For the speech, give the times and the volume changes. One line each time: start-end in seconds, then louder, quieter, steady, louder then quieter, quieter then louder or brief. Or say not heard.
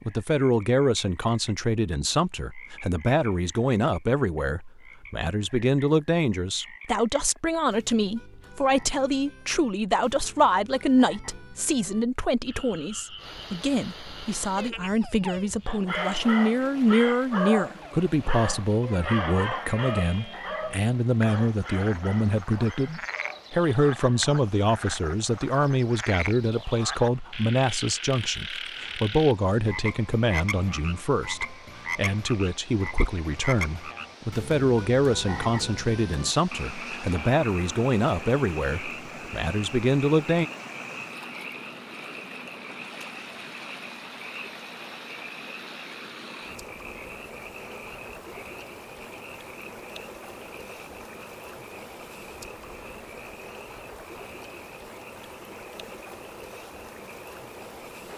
0.0-40.5 steady.